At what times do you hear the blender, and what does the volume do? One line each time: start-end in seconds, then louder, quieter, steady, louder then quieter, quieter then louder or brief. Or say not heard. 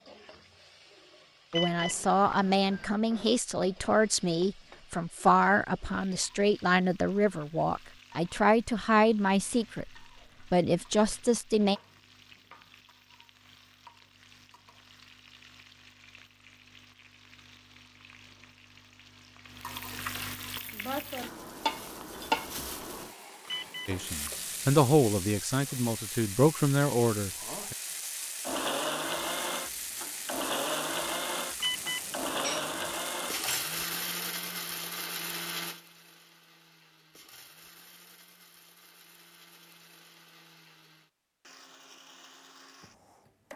28.4-43.5 quieter.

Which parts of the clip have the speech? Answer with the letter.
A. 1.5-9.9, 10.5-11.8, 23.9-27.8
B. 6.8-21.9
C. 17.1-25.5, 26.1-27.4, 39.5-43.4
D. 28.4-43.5
A.